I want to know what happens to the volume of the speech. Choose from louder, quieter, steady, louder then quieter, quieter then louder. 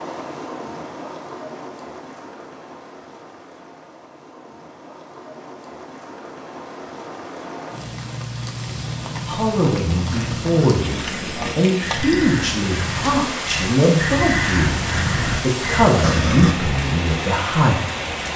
steady.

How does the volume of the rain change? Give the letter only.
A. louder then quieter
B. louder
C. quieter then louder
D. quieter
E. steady
B.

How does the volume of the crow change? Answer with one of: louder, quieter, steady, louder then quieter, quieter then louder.
louder.